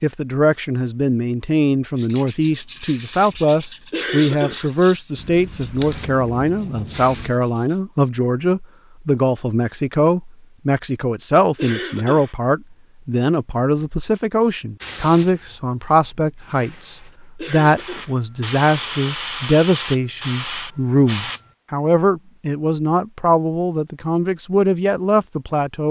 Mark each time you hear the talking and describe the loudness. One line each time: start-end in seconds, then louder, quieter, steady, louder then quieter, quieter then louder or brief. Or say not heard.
0.0-25.8 steady.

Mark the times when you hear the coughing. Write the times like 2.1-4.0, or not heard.
3.9-4.7, 11.6-12.3, 17.4-18.1.